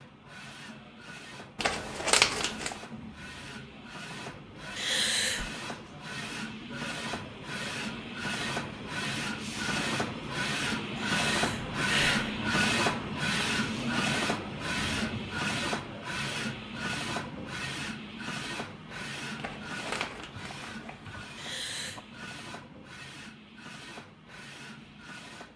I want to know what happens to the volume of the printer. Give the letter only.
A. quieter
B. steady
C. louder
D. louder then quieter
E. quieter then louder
D.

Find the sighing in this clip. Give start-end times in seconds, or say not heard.
4.8-5.5, 10.9-12.3, 21.4-22.0.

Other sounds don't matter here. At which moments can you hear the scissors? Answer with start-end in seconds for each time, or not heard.
1.6-2.8, 19.4-21.1.